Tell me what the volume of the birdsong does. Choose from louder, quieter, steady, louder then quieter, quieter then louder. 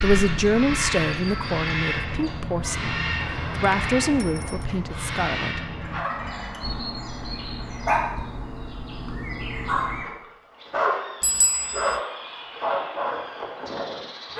quieter.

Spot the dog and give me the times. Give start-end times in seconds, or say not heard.
5.9-14.3.